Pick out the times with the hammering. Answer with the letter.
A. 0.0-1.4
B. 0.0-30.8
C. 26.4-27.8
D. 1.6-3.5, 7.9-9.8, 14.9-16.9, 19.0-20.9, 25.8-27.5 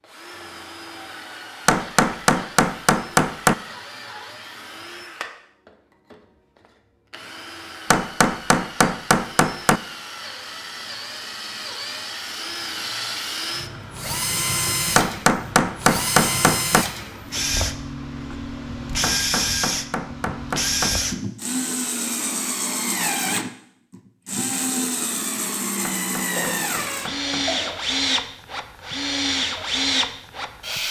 D.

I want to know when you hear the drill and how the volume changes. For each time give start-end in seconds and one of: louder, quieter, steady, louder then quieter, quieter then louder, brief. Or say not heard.
0.0-30.8 louder.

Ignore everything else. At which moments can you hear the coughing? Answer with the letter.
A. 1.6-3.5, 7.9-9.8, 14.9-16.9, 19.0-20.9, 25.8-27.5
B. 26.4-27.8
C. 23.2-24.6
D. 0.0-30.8
B.